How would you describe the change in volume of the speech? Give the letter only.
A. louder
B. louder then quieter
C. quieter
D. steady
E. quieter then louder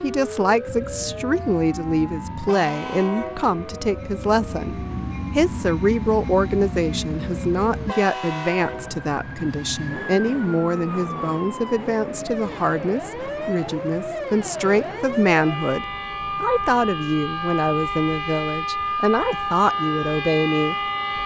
D.